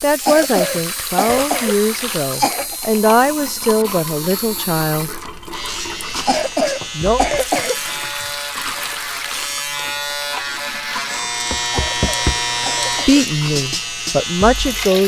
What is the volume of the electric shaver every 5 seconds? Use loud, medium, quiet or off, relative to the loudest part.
medium, medium, loud.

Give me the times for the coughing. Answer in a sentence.
You can hear the coughing from 0.2 to 2.8 s, from 6.2 to 8.0 s and from 11.9 to 13.2 s.